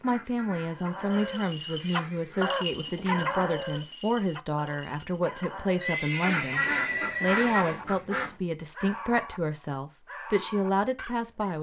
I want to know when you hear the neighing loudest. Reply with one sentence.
The volume of the neighing peaks at 7 seconds.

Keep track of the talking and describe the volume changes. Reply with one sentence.
The loudness of the talking stays about the same.